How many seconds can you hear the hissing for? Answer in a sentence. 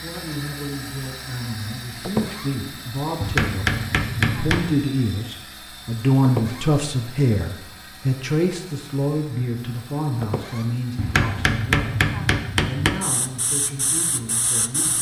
You can hear the hissing for 2 seconds altogether.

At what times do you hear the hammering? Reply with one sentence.
The hammering can be heard from 3.2 to 4.8 s and from 10.9 to 13.0 s.